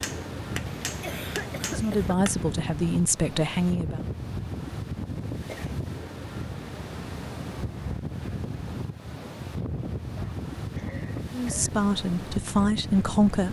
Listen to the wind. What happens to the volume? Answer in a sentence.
The loudness of the wind stays about the same.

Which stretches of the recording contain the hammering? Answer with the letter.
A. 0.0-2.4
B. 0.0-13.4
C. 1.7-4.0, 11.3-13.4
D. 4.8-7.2
A.